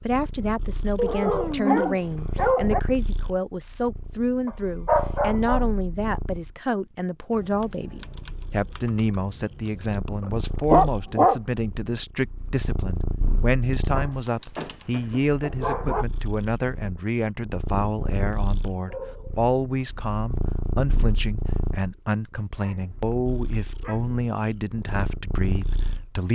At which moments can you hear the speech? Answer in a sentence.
You can hear the speech from 0.1 to 26.3 s.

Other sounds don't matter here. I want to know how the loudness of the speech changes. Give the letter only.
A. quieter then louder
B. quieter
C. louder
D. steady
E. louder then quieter
D.